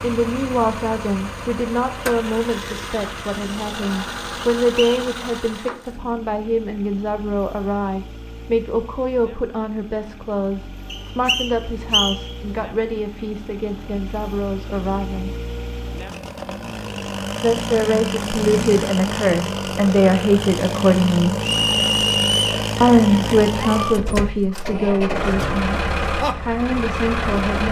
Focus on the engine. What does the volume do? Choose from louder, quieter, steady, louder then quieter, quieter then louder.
quieter then louder.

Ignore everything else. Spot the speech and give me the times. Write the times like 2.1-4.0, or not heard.
0.0-15.3, 17.4-21.4, 22.8-27.6.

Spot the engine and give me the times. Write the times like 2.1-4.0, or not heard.
0.0-27.6.